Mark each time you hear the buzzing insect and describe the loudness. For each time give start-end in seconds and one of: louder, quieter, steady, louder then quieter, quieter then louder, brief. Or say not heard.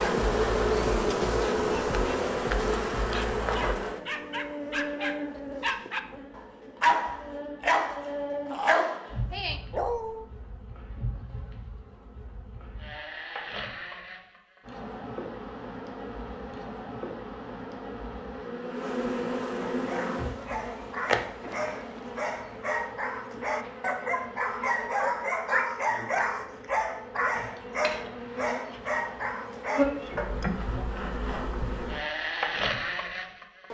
0.0-33.6 quieter then louder.